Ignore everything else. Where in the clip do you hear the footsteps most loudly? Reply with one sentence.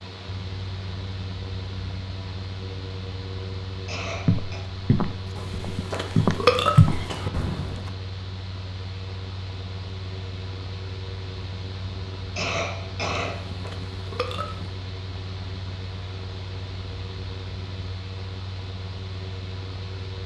The volume of the footsteps peaks at 7 seconds.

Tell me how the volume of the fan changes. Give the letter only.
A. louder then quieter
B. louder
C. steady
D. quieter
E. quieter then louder
C.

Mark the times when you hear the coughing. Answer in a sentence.
The coughing can be heard from 3.9 to 4.6 s and from 12.3 to 13.5 s.